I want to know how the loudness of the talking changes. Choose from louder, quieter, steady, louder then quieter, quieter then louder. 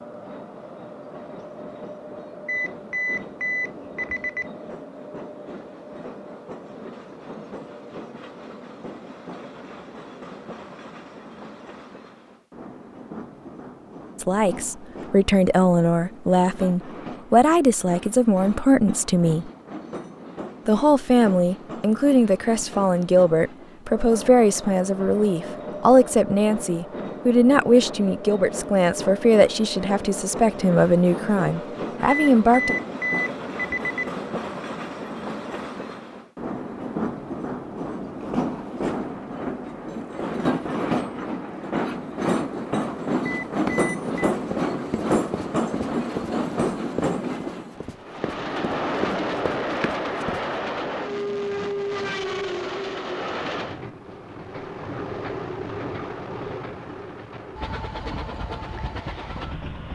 steady.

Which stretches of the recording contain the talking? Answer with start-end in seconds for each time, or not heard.
14.2-19.5, 20.6-32.8.